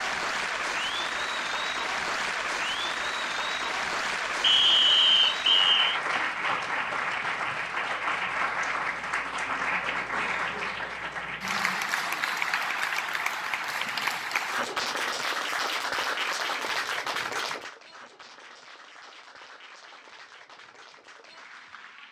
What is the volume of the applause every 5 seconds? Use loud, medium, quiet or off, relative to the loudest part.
loud, loud, loud, loud, quiet.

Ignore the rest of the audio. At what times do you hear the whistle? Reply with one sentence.
The whistle can be heard from 4.4 to 6.0 s.